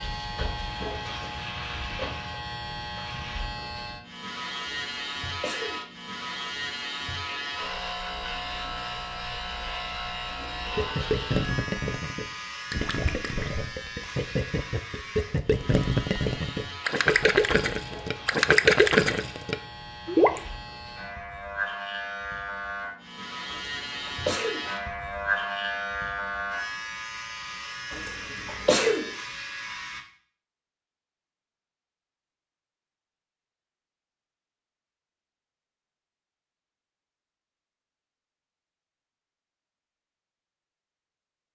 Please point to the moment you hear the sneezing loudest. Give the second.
29 s.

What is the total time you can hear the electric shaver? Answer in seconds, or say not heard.
30 s.